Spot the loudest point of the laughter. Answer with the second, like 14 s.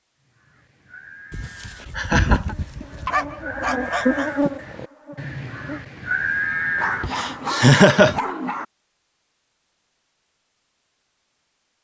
8 s.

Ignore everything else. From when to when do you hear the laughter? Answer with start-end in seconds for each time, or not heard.
1.9-2.5, 7.0-8.2.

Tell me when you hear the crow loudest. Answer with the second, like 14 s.
6 s.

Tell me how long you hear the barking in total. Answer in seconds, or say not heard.
5 s.